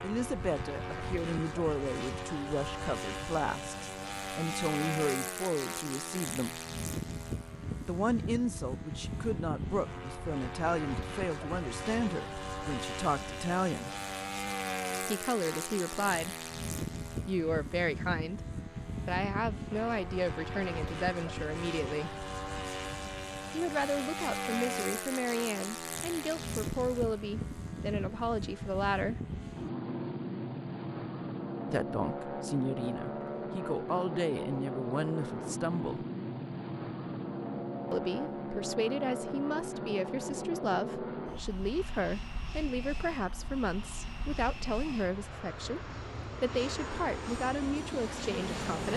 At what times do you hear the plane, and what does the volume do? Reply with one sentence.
You can hear the plane from 0.0 to 48.9 s, at a steady volume.